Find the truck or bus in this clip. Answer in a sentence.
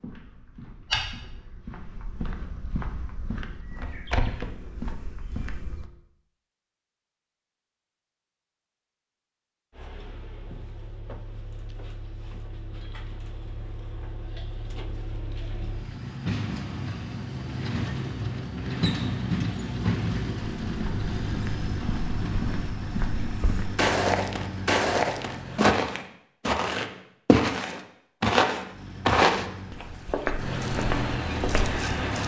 You can hear the truck or bus from 9.7 to 25.8 s and from 28.7 to 32.2 s.